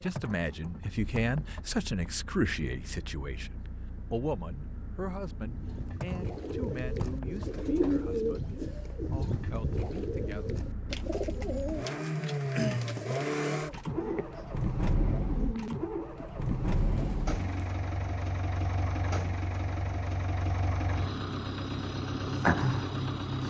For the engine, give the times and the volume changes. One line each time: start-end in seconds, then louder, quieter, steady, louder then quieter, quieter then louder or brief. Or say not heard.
0.0-23.4 louder.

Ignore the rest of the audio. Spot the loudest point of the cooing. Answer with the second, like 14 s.
8 s.